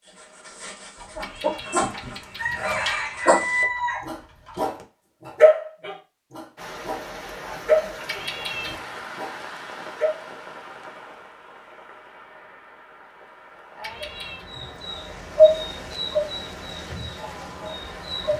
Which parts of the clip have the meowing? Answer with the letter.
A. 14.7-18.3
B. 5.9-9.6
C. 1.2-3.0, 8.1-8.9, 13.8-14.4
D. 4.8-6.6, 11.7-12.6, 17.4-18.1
C.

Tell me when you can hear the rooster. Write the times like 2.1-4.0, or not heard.
0.9-4.6.